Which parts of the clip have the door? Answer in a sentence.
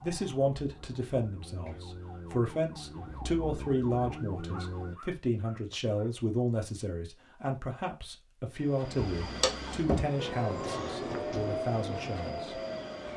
The door can't be heard in this clip.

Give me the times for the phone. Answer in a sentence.
You can hear the phone from 8.9 to 10.1 s.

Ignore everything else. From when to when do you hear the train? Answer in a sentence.
You can hear the train from 8.5 to 13.1 s.